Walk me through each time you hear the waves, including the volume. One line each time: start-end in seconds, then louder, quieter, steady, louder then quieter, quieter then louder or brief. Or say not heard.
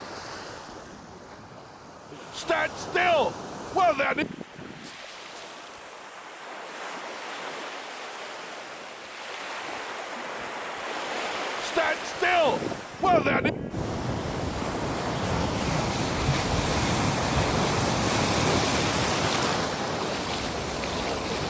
0.0-21.4 louder.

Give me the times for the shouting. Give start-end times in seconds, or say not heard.
2.4-4.2, 11.6-13.5.